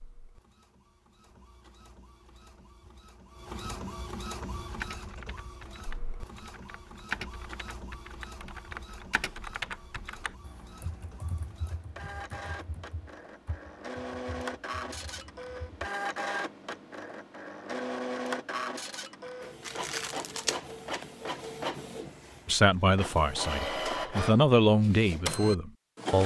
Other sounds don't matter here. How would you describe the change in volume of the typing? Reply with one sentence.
The loudness of the typing goes up, then down.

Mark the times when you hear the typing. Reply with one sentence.
The typing can be heard from 4.6 to 15.9 s.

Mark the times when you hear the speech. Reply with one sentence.
The speech can be heard from 22.4 to 26.2 s.